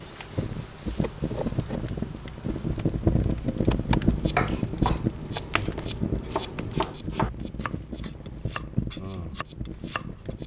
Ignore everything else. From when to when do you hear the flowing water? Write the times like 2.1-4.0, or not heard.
not heard.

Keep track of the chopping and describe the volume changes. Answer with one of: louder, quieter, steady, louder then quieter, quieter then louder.
quieter.